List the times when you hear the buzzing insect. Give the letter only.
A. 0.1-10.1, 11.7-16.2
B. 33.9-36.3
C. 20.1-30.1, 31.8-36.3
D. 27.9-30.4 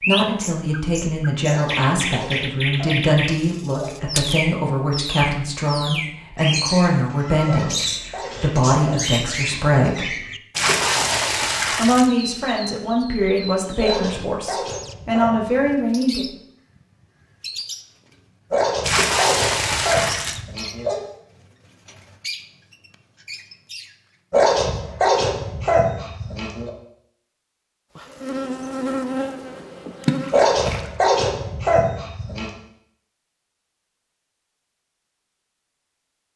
D.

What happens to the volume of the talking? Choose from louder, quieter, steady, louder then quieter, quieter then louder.
steady.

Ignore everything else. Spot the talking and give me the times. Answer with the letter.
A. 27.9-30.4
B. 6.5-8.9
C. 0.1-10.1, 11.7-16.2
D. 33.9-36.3
C.